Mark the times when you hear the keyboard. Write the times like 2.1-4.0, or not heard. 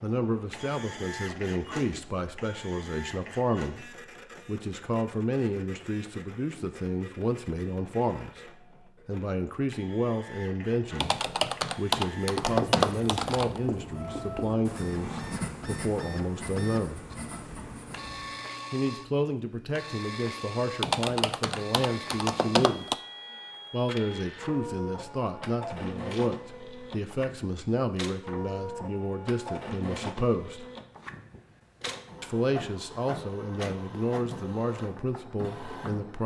11.0-13.6, 20.8-22.9.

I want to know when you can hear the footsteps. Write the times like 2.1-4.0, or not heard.
not heard.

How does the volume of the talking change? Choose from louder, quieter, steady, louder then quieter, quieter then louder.
steady.